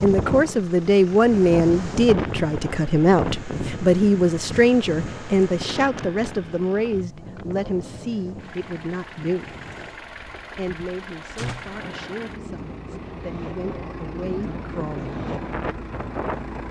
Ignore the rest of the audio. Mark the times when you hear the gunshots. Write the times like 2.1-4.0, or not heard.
11.3-11.8.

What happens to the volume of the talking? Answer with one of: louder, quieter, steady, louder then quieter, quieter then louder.
quieter.